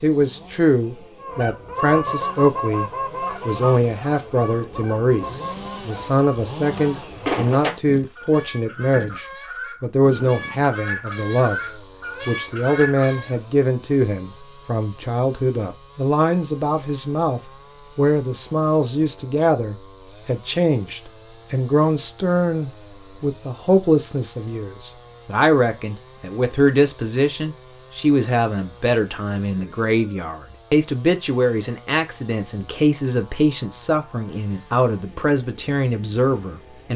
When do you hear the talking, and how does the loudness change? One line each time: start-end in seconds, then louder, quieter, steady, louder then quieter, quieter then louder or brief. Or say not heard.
0.0-36.9 steady.